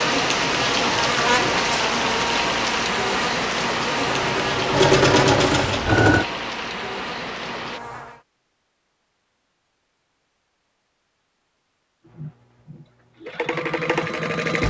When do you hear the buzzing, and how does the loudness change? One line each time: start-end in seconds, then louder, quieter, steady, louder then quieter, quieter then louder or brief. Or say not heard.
0.0-8.2 quieter.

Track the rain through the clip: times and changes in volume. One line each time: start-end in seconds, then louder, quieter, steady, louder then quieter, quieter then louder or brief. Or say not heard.
0.0-7.8 quieter.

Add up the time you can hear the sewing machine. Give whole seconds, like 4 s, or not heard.
5 s.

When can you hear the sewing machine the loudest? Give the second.
5 s.